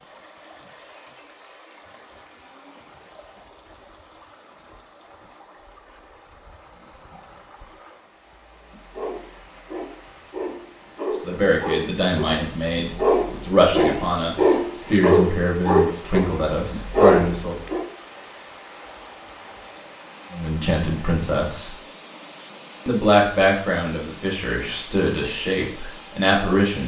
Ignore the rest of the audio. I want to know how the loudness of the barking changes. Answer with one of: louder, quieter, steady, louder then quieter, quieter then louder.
louder.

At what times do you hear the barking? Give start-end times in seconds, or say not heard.
8.5-17.9.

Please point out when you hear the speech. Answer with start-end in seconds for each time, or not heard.
11.1-17.6, 20.3-21.8, 22.9-26.8.